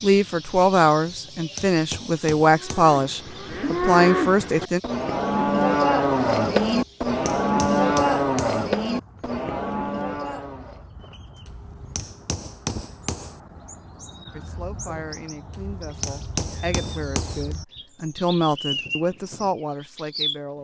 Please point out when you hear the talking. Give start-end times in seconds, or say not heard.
0.0-4.8, 14.3-20.5.